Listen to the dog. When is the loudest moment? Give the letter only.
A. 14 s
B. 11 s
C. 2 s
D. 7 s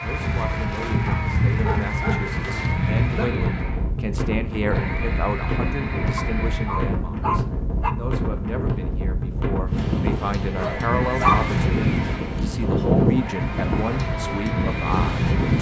B.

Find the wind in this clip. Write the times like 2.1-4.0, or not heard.
0.0-15.5.